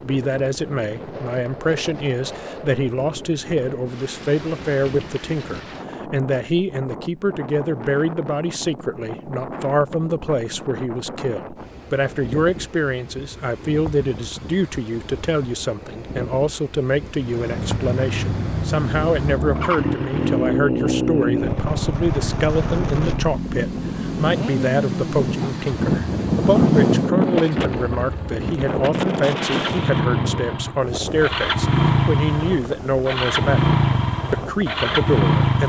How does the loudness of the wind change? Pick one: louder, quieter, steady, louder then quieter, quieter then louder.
louder then quieter.